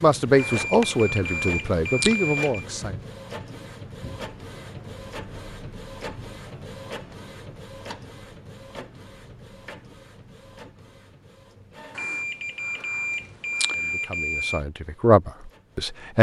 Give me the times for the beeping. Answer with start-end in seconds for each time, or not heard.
0.3-2.6, 11.9-14.6.